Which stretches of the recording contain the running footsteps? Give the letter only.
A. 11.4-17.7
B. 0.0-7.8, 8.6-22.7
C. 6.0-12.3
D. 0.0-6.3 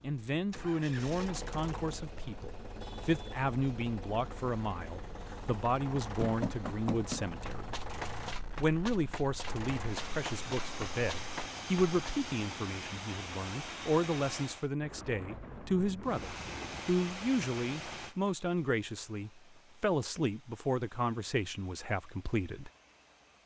C.